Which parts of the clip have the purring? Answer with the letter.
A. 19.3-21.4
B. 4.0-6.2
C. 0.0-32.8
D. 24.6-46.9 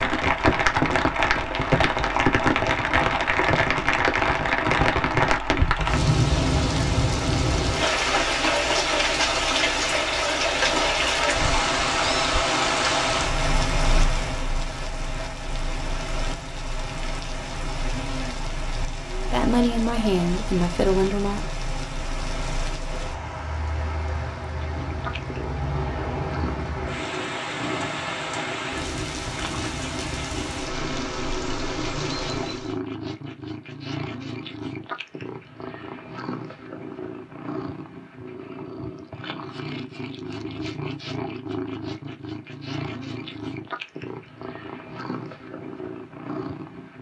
D.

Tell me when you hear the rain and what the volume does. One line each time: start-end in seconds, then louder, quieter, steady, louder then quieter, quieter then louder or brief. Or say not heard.
0.0-32.8 quieter.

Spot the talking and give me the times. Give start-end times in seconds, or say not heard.
19.3-21.4.